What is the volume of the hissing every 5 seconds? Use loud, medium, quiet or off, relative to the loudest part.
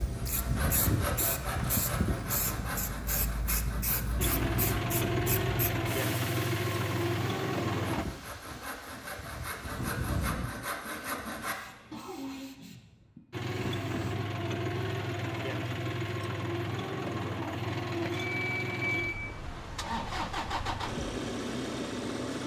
loud, medium, medium, off, off.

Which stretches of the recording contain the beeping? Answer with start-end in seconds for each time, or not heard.
18.1-19.2.